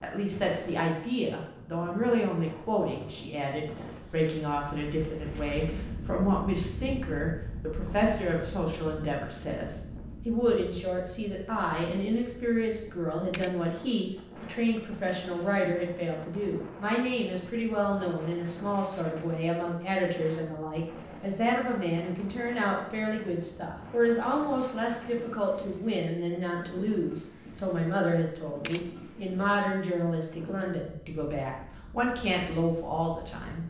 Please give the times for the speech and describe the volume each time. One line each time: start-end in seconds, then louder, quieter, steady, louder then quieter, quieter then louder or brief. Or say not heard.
0.0-33.6 steady.